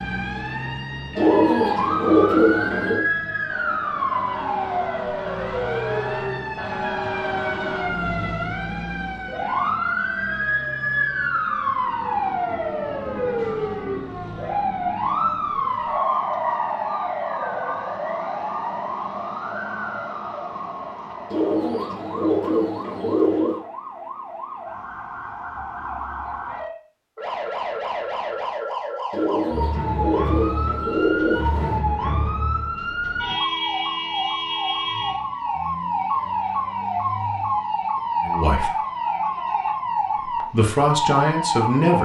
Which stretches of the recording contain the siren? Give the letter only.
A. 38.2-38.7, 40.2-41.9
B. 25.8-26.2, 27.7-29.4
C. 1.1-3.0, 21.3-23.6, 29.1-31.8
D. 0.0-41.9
D.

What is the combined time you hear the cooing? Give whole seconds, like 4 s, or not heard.
7 s.